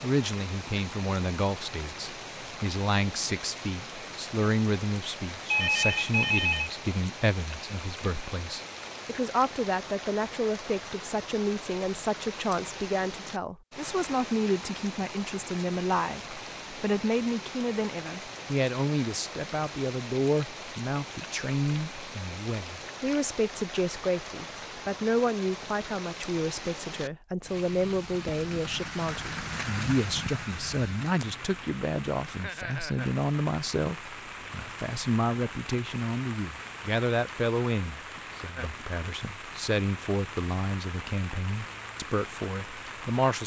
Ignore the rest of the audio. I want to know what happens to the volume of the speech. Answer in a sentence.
The volume of the speech stays about the same.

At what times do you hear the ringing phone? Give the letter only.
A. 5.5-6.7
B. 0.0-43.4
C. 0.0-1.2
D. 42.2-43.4
A.